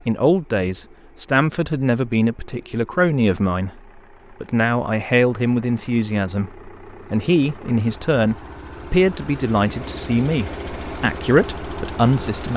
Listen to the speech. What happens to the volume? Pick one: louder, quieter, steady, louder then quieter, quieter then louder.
steady.